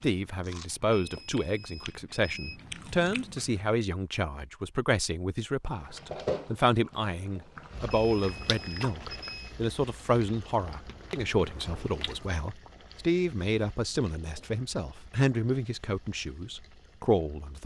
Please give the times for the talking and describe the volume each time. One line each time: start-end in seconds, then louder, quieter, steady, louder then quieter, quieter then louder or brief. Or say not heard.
0.0-17.6 steady.